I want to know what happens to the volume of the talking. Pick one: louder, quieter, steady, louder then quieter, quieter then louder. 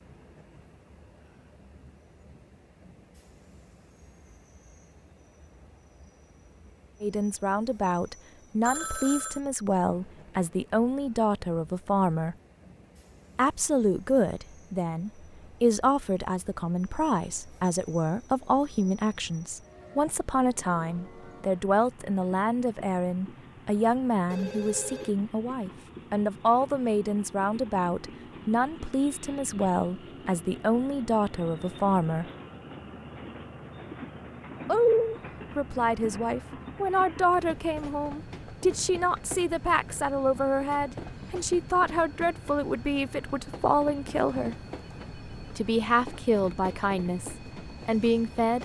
steady.